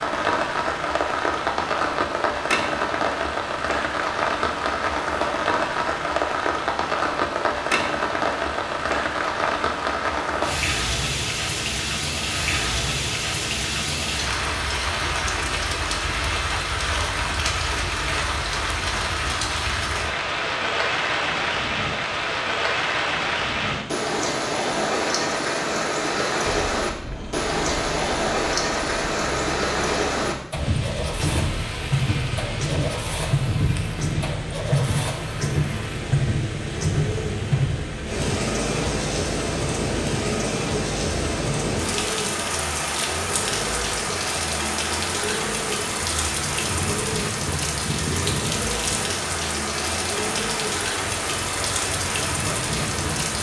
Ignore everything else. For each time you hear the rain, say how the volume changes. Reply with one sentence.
The rain can be heard from 0.0 to 53.3 s, at a steady volume.